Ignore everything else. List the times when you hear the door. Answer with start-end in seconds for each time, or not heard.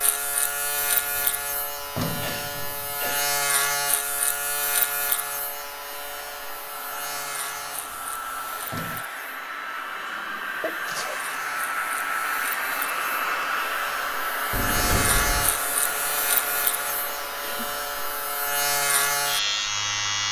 0.8-3.1, 7.8-9.1, 14.5-15.6.